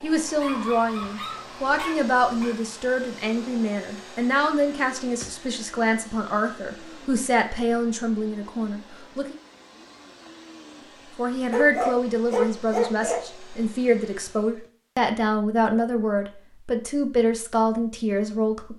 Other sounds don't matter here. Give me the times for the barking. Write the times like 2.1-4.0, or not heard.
0.2-2.5, 11.5-13.2.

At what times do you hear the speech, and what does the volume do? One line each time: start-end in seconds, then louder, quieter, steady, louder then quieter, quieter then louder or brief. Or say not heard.
0.0-9.3 steady
11.2-18.7 steady.